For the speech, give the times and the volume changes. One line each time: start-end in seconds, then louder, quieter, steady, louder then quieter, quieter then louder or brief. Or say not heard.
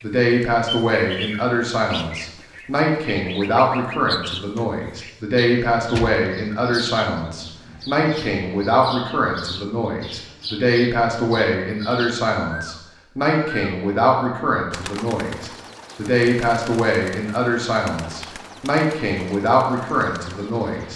0.0-20.9 steady.